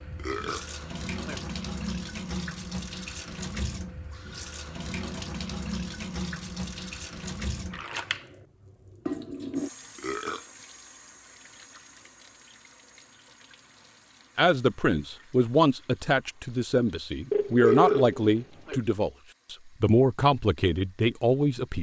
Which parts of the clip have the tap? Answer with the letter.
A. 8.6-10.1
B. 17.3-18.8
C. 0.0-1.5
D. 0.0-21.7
D.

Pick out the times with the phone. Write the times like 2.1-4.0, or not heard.
17.3-18.8.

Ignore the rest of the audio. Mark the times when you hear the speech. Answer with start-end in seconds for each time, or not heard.
14.3-21.7.